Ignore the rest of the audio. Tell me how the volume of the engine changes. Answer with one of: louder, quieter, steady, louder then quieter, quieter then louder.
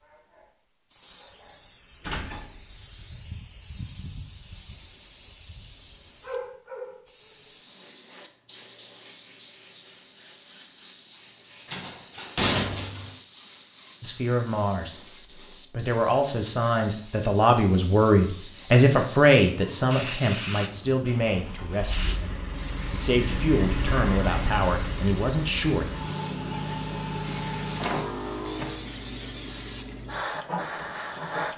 louder.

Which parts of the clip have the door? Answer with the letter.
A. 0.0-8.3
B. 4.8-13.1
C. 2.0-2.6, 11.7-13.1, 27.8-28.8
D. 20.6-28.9
C.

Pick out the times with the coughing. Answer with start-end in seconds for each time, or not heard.
not heard.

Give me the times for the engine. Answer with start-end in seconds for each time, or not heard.
20.6-28.9.